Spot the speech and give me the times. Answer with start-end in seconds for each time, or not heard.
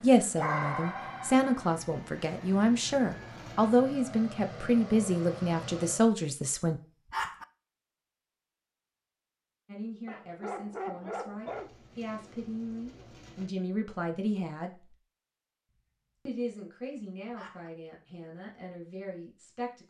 0.0-6.8, 9.7-14.9, 16.2-19.8.